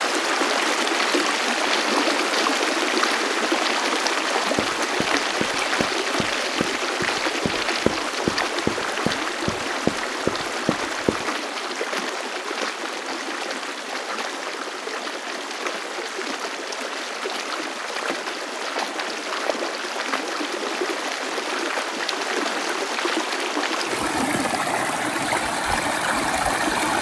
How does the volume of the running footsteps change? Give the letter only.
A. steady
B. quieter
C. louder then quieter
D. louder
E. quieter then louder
D.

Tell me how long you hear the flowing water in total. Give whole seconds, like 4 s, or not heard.
27 s.